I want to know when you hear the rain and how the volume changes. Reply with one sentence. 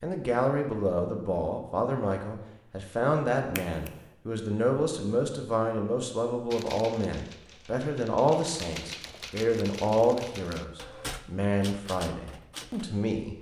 The rain can't be heard in this clip.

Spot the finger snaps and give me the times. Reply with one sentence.
The finger snaps can be heard from 3.5 to 4.1 s.